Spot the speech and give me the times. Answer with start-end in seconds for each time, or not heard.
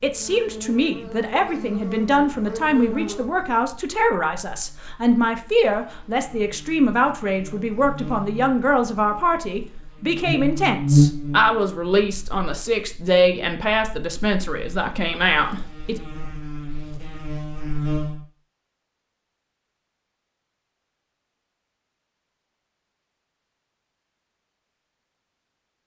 0.0-16.0.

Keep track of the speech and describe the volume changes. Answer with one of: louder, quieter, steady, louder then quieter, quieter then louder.
steady.